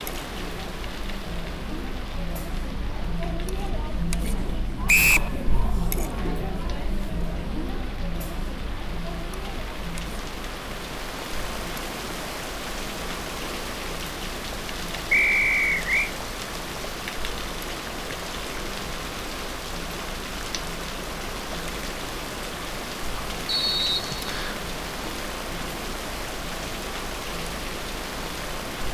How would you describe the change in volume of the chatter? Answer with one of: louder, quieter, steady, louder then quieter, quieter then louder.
quieter.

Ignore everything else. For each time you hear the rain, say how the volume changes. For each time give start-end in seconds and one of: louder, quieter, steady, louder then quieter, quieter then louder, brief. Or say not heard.
0.0-28.8 louder.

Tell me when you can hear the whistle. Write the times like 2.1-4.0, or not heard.
4.8-5.3, 15.1-16.1, 23.4-24.6.